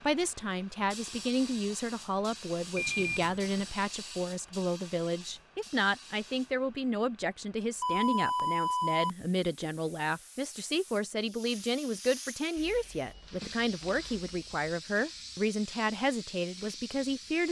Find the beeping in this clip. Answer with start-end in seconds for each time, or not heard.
2.8-3.7, 7.8-9.1, 12.6-14.6.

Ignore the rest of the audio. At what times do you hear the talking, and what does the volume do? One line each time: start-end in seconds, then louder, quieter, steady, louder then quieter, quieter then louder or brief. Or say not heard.
0.0-17.4 steady.